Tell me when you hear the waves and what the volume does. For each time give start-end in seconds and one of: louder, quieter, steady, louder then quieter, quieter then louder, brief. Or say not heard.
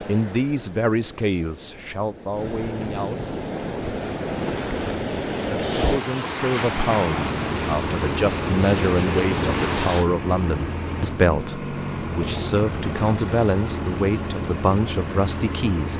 0.0-10.1 louder.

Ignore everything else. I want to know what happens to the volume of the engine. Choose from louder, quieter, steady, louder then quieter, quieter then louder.
steady.